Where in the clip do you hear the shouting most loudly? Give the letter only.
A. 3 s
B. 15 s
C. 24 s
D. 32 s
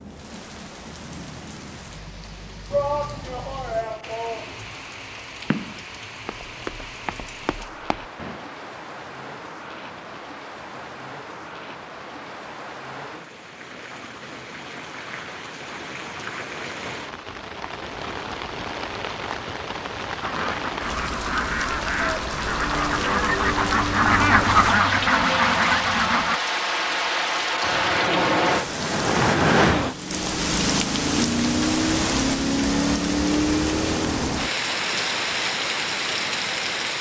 A.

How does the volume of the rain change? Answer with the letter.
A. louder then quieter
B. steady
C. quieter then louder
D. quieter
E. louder
E.